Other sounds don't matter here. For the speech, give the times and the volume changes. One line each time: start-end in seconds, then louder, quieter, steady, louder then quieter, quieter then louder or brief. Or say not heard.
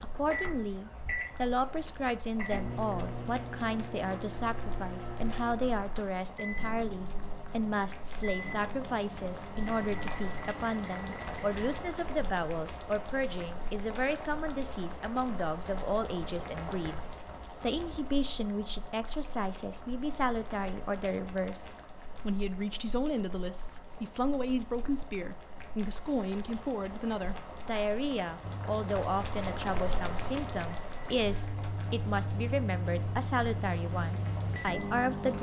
0.0-35.3 steady.